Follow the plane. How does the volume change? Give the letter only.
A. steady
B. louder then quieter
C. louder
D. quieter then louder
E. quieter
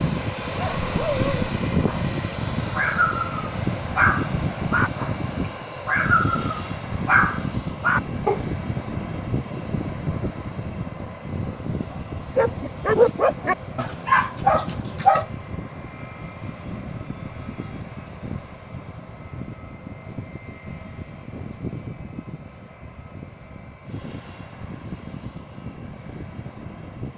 E.